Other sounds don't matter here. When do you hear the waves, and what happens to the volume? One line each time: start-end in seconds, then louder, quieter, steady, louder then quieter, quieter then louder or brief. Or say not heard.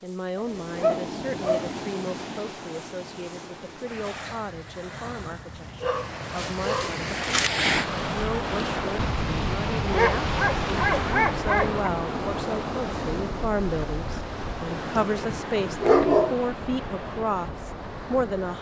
0.0-18.5 louder then quieter.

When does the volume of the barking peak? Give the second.
16 s.